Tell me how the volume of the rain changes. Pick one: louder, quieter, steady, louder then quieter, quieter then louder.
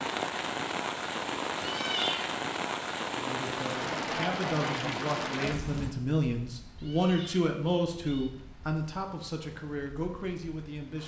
quieter.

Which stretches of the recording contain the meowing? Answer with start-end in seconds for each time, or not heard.
1.6-2.3, 6.8-8.3.